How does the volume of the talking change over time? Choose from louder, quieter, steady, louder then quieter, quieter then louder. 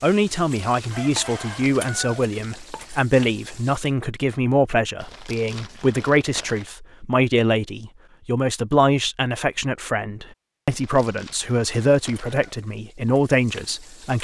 steady.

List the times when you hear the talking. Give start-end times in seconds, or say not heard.
0.0-14.1.